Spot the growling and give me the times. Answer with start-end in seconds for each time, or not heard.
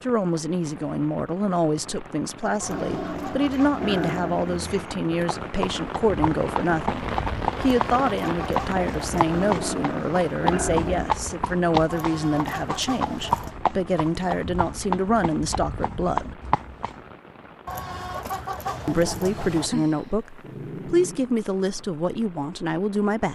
2.6-5.0, 9.3-11.2, 18.9-21.2.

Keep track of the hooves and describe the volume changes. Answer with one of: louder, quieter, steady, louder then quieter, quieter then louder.
steady.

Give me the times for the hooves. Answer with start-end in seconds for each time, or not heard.
5.4-16.9.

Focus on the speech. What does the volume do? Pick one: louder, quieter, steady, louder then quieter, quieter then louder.
steady.